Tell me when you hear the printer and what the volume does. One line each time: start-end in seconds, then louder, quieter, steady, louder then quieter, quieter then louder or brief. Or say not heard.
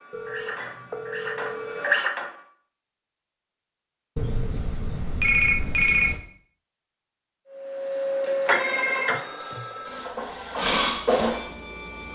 0.0-2.4 brief
7.5-12.0 quieter then louder.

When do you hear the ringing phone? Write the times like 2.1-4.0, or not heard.
0.1-1.8, 4.2-6.2, 9.1-10.2.